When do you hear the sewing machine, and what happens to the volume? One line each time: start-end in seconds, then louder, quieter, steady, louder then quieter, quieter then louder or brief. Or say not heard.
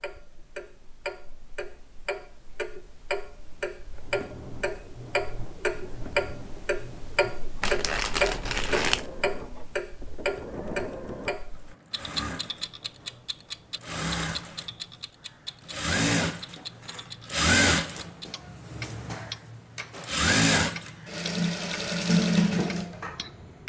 3.9-23.6 louder.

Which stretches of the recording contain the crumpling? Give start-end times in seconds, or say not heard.
7.6-9.1.